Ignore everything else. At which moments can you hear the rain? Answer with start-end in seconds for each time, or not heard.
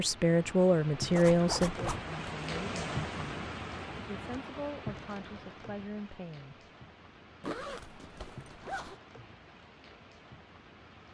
0.0-11.0.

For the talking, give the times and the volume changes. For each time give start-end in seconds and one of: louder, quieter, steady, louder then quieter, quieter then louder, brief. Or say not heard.
0.0-6.5 quieter.